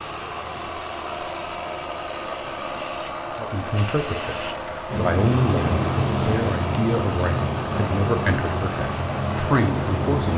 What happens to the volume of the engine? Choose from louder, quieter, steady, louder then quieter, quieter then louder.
steady.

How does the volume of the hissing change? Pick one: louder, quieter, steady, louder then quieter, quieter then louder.
louder.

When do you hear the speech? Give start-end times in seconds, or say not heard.
3.4-10.3.